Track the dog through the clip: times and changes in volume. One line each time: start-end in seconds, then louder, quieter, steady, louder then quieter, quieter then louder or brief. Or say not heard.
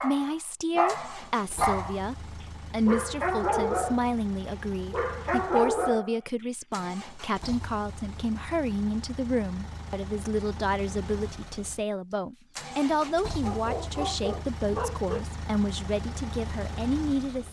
0.0-4.2 quieter then louder
4.9-6.2 brief
13.4-15.2 brief.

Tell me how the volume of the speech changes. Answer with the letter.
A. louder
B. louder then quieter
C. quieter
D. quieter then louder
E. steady
E.